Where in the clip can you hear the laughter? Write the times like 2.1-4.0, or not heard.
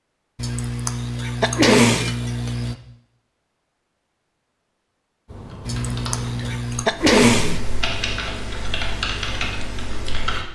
0.3-2.8, 5.7-6.9.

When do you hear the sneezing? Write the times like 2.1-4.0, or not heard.
1.4-2.1, 6.8-7.6.